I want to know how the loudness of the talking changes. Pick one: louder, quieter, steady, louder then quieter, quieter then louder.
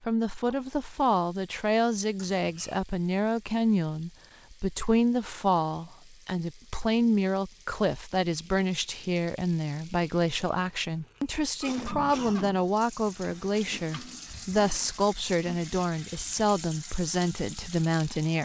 steady.